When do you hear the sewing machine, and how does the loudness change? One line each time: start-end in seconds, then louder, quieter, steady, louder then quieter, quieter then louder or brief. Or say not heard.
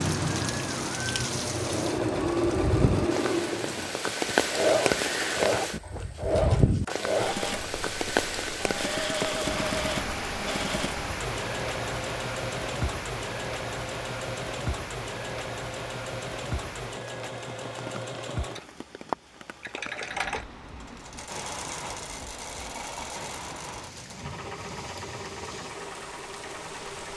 0.0-27.1 quieter.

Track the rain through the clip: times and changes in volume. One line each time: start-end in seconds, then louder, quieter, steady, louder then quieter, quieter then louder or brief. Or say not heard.
0.0-27.1 quieter.